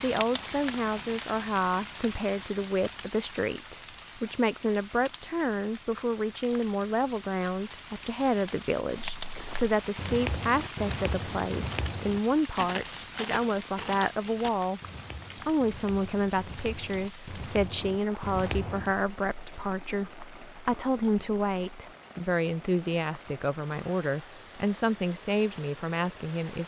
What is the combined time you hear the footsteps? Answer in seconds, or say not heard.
10 s.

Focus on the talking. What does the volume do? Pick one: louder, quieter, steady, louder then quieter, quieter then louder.
steady.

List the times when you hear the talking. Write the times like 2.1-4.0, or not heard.
0.0-14.8, 15.4-26.6.